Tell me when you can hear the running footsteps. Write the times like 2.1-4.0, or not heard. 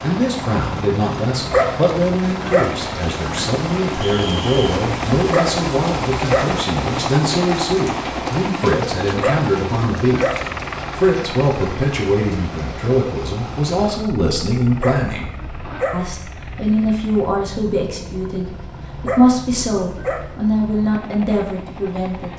not heard.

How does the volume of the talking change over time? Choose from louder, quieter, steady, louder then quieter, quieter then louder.
steady.